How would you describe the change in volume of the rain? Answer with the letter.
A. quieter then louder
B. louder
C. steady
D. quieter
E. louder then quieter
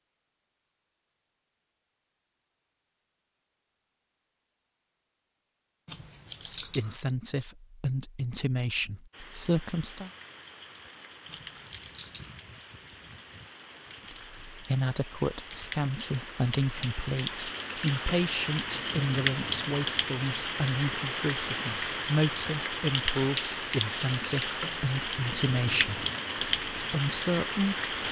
B.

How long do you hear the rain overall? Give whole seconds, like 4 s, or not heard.
19 s.